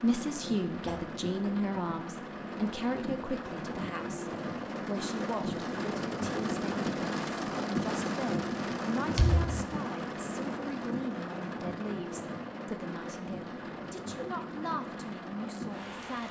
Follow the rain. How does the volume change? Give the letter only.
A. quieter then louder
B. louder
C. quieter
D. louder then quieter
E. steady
D.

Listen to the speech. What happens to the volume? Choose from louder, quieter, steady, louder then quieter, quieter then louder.
quieter.